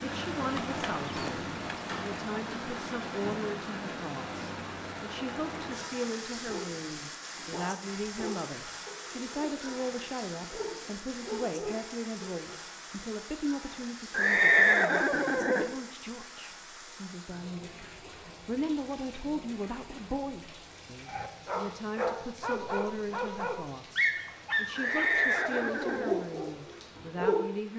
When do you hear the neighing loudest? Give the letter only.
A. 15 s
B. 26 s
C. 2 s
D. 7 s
A.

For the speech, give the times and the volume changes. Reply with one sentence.
You can hear the speech from 0.0 to 27.7 s, at a steady volume.